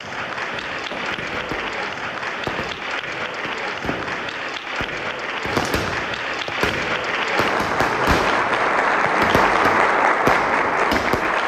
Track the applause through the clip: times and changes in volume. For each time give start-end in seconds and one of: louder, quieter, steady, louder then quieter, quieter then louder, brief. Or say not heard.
0.0-11.4 louder.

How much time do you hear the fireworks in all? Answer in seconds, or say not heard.
11 s.